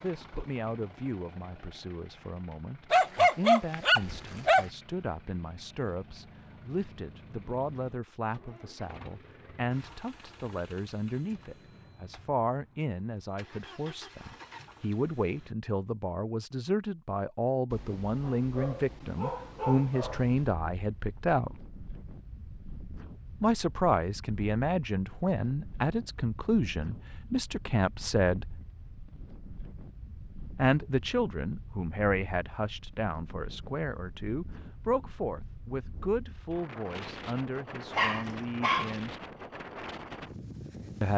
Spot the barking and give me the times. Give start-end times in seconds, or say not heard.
2.9-4.7, 17.7-20.5, 38.0-39.0.